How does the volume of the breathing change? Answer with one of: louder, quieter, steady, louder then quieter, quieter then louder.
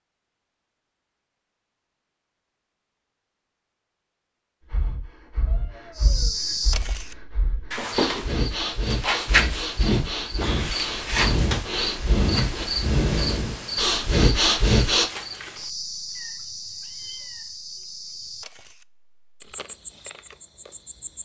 louder.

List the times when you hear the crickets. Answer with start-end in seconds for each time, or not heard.
6.0-21.2.